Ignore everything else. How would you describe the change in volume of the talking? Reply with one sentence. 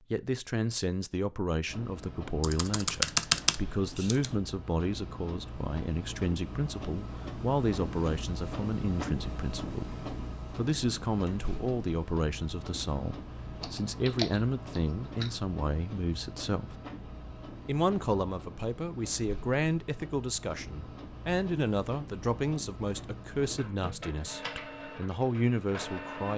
The loudness of the talking stays about the same.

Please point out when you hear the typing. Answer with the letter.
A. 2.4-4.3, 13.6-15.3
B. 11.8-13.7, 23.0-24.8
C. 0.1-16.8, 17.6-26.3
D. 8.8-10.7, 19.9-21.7
A.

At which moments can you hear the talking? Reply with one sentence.
You can hear the talking from 0.1 to 16.8 s and from 17.6 to 26.3 s.